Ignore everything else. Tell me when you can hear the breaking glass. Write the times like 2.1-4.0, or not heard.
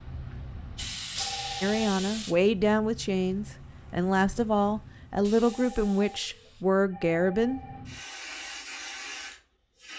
1.1-1.6.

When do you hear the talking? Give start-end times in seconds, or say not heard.
1.6-7.6.